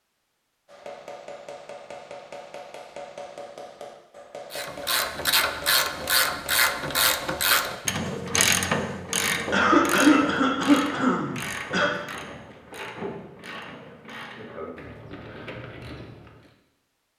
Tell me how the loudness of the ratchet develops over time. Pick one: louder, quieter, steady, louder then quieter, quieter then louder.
quieter.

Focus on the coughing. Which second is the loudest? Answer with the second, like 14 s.
10 s.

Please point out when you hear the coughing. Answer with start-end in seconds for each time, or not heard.
9.5-11.9.